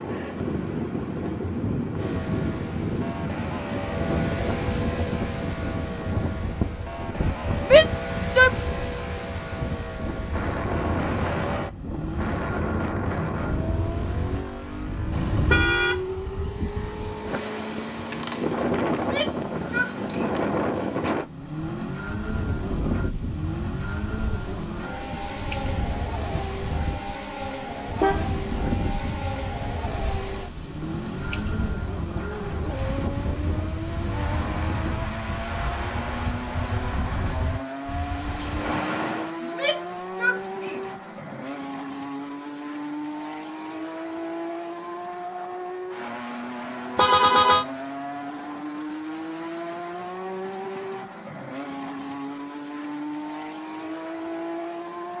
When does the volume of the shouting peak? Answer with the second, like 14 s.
8 s.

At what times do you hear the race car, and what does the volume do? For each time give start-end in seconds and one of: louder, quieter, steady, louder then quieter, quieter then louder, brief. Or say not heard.
1.9-55.1 steady.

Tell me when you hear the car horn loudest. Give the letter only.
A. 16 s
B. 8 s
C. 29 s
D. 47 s
D.